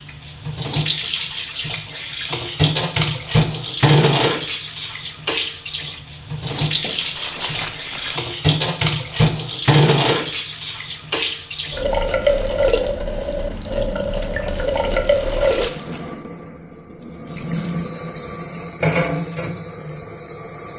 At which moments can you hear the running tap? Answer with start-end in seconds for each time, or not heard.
0.0-20.7.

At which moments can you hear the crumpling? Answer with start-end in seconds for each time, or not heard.
6.5-8.2, 14.4-16.1.